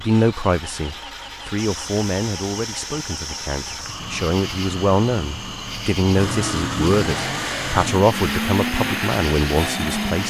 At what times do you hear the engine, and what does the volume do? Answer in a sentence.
The engine can be heard from 0.0 to 10.2 s, getting louder.